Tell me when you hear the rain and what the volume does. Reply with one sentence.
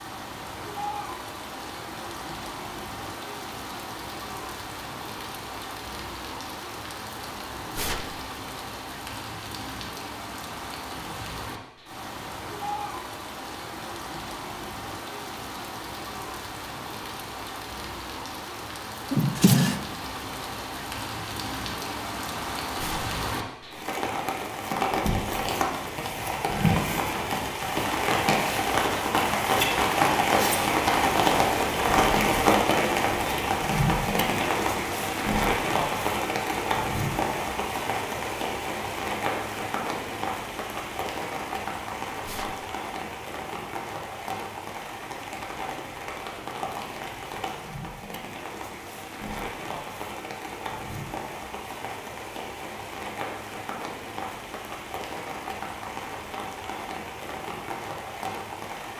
The rain can be heard from 0.0 to 58.9 s, getting louder then quieter.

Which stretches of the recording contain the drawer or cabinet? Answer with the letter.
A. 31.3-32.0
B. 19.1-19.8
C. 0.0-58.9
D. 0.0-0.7
B.